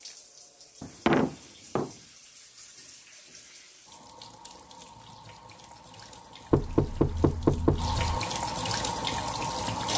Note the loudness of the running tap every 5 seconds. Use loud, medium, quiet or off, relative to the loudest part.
quiet, loud.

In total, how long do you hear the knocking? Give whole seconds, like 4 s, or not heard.
3 s.